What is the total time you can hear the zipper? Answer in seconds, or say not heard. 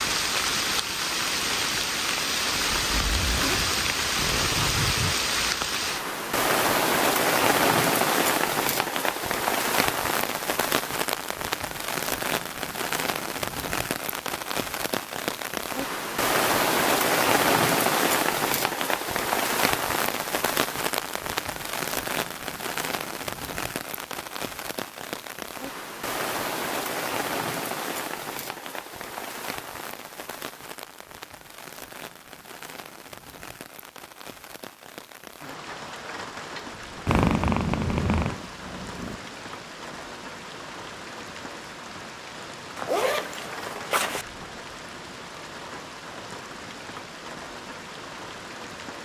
4 s.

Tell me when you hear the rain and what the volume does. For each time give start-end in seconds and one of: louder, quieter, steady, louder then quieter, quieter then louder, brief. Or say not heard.
0.0-48.9 quieter.